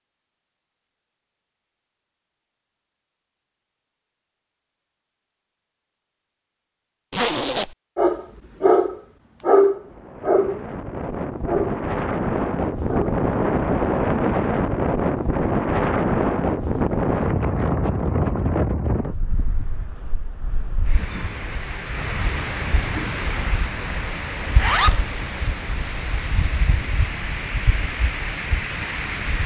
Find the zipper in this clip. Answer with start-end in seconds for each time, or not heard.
7.1-7.8, 24.4-25.0.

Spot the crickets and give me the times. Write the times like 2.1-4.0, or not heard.
not heard.